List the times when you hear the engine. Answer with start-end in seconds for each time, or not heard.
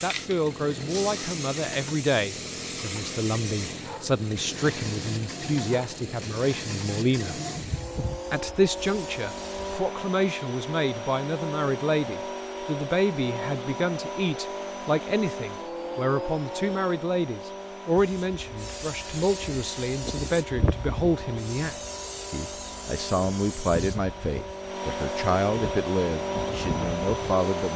0.0-27.7.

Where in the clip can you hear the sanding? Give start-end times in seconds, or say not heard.
not heard.